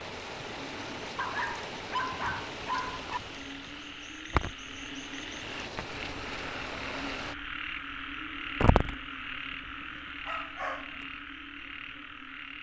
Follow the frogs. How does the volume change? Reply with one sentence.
The volume of the frogs goes up, then down.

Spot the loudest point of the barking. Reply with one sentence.
The loudest moment of the barking is at 2 seconds.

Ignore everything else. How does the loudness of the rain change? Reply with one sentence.
The loudness of the rain goes down, then up.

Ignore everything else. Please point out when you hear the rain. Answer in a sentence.
The rain can be heard from 0.0 to 7.3 s.